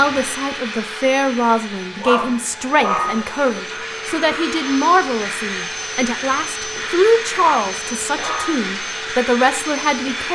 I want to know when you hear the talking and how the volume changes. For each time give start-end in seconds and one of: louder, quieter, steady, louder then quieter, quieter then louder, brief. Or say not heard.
0.0-10.3 steady.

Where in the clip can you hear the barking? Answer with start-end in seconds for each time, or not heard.
2.0-3.2, 7.4-8.7.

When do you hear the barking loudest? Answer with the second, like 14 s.
3 s.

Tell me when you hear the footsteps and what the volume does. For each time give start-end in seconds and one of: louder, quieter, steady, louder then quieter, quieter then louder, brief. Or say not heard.
not heard.